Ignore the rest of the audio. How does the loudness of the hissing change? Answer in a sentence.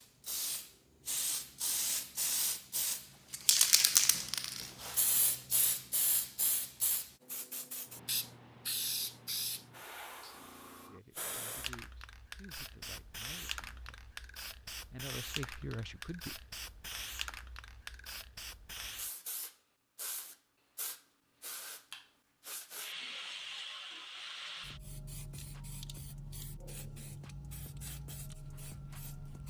The volume of the hissing goes down.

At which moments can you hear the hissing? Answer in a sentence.
The hissing can be heard from 0.0 to 29.4 s.